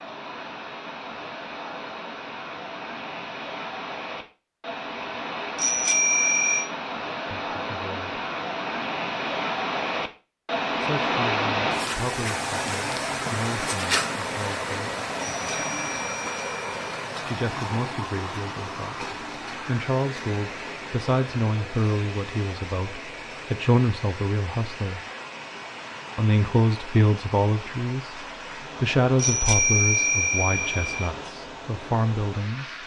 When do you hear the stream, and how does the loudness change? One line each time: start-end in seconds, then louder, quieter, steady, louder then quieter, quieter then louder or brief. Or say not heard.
0.0-32.8 louder then quieter.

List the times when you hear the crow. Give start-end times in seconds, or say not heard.
not heard.